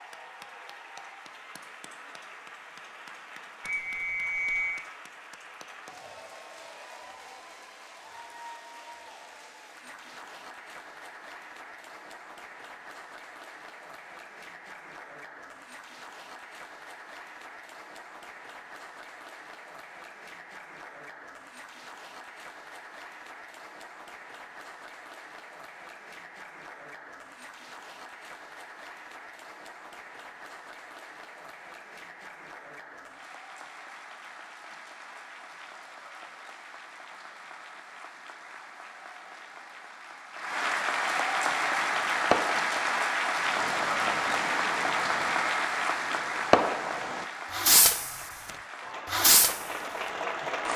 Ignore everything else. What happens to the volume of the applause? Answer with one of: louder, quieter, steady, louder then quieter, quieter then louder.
louder.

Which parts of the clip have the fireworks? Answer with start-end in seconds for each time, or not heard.
41.5-48.1, 49.0-49.7.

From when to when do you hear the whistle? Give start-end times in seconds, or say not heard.
3.6-4.8.